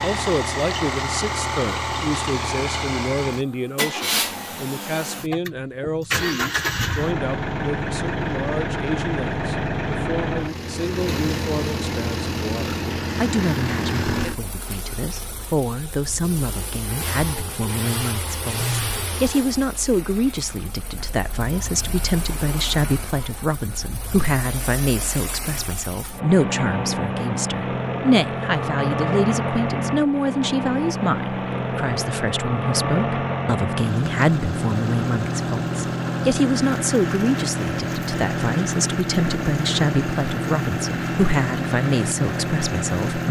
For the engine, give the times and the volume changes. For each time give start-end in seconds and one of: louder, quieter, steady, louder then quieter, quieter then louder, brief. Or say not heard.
0.0-43.2 quieter then louder.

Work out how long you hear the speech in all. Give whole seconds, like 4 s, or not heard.
43 s.